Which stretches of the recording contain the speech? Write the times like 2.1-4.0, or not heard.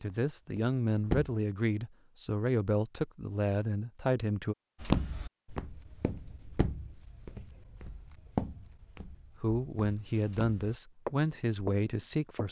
0.0-4.5, 9.4-12.4.